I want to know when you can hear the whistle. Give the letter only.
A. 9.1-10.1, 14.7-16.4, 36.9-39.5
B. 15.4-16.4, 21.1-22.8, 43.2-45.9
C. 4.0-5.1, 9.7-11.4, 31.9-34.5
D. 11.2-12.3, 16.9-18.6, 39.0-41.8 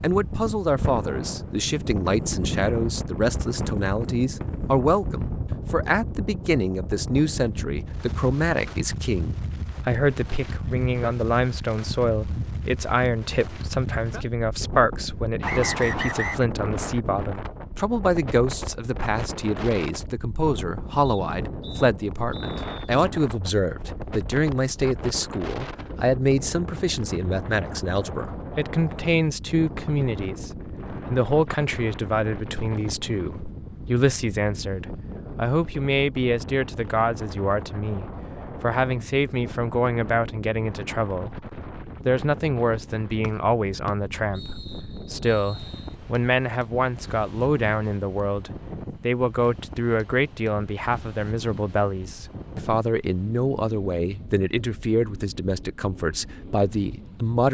B.